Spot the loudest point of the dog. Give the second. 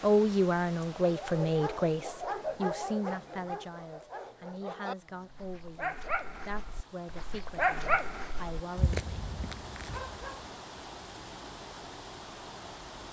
8 s.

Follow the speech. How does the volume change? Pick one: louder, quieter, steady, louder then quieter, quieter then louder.
quieter.